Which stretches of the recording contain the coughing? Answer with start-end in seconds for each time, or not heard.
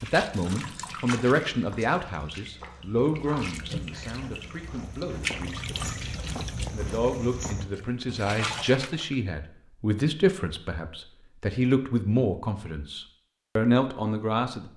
not heard.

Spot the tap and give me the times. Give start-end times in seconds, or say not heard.
0.0-9.2.